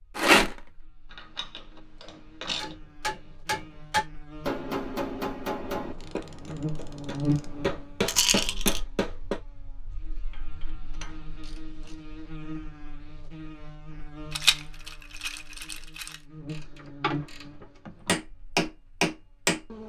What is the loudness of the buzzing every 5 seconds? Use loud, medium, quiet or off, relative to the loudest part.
quiet, loud, medium, medium.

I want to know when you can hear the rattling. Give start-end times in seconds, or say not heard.
0.1-0.6, 8.1-8.8, 14.3-16.1.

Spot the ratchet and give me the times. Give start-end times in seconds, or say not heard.
1.1-2.8, 5.8-7.8, 10.3-11.9, 16.4-18.2.